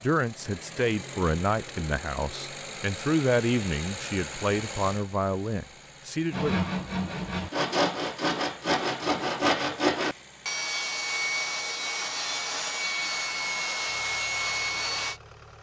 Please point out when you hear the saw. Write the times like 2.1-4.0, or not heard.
6.3-15.2.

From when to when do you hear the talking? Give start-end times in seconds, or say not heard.
0.0-6.5.